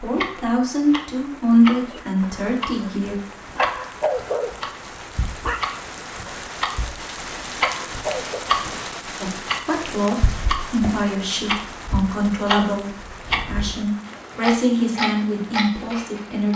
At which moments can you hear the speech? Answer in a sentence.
You can hear the speech from 0.0 to 3.1 s and from 9.2 to 16.5 s.